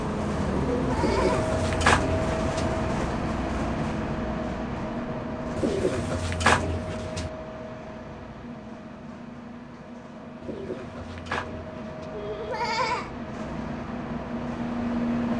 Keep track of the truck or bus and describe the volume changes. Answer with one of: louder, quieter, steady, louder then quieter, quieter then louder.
quieter then louder.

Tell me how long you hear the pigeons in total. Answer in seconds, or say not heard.
5 s.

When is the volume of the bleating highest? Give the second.
13 s.